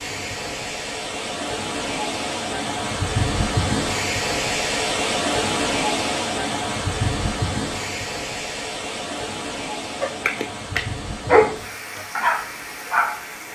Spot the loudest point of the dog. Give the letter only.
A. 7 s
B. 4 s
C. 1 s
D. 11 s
D.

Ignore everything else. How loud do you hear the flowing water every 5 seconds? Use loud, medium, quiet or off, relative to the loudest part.
loud, loud, medium.